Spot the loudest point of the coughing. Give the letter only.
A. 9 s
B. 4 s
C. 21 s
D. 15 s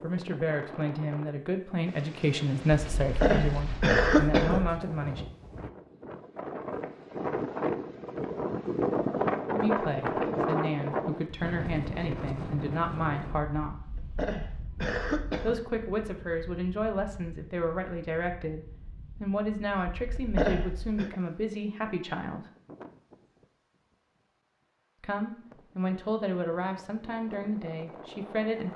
B.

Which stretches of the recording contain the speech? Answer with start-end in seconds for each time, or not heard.
0.0-5.2, 9.5-13.8, 15.4-22.4, 25.0-28.7.